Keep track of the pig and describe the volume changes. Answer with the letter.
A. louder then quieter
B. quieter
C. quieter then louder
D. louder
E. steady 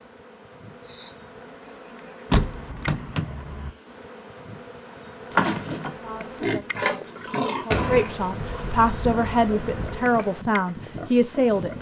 B.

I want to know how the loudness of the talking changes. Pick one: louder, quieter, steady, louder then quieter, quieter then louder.
louder.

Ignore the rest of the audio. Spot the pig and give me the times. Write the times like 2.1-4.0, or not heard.
5.3-11.7.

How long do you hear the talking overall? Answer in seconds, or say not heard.
6 s.